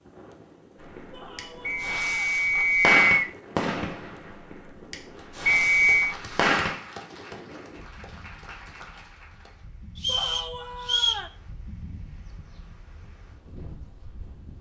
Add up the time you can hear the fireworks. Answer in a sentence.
The fireworks can be heard for 6 seconds in total.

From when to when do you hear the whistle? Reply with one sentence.
The whistle can be heard from 1.6 to 3.0 s, from 5.5 to 6.2 s and from 10.0 to 11.2 s.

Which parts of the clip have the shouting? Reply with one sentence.
The shouting can be heard from 1.1 to 2.5 s and from 10.1 to 11.3 s.